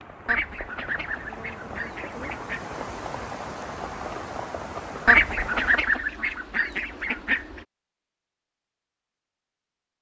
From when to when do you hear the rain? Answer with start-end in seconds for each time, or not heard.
0.0-6.0.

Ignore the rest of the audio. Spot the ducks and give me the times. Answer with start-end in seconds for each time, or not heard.
0.2-2.6, 5.0-7.6.